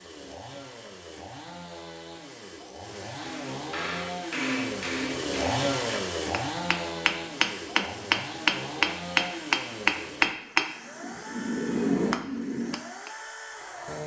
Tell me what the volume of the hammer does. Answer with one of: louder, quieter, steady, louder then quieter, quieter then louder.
louder then quieter.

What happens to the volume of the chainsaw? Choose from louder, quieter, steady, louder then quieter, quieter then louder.
louder then quieter.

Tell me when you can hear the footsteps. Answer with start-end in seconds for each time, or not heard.
not heard.